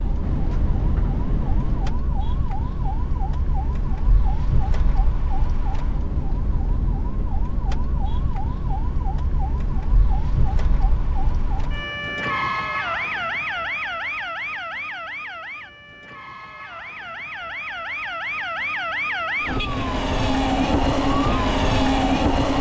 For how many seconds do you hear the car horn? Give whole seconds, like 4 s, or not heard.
2 s.